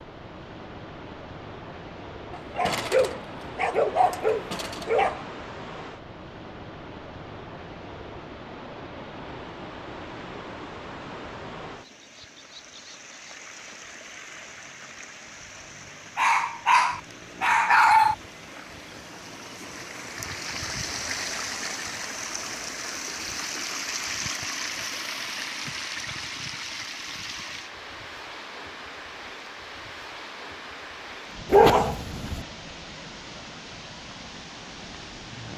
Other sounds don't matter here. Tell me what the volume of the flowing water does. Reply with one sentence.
The loudness of the flowing water goes up, then down.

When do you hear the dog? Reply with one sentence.
The dog can be heard from 2.3 to 5.2 s, from 16.1 to 18.1 s and from 31.5 to 32.5 s.